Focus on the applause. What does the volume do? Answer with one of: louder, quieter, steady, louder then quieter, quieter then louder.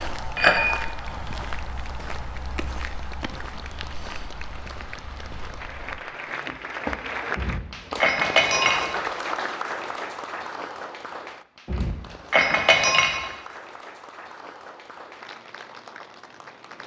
louder then quieter.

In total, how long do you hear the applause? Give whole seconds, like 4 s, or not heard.
17 s.